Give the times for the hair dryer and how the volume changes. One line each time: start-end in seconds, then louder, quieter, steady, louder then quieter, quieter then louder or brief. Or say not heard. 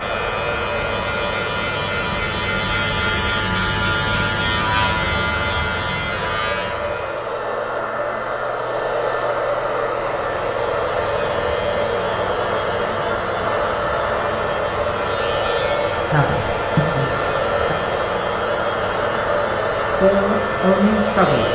0.0-21.4 louder.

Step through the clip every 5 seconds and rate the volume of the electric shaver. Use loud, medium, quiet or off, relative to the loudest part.
loud, loud, medium, medium, medium.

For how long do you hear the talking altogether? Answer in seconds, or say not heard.
3 s.